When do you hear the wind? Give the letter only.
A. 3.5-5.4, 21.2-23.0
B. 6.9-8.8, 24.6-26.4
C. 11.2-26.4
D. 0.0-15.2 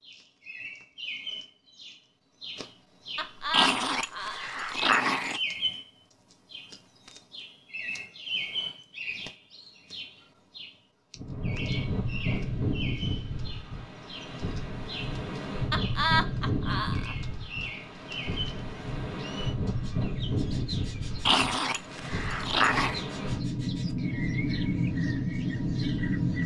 C.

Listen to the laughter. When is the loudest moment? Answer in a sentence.
The volume of the laughter peaks at 16 seconds.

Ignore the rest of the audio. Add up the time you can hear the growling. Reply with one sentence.
You can hear the growling for 4 seconds altogether.